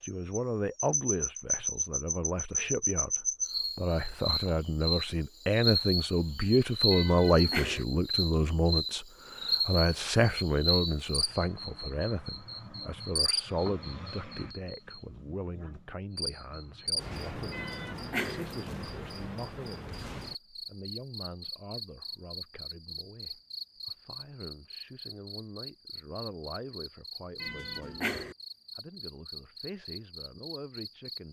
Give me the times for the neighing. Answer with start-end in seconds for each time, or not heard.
not heard.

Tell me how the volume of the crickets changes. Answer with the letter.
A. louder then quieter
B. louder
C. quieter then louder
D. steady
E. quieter
E.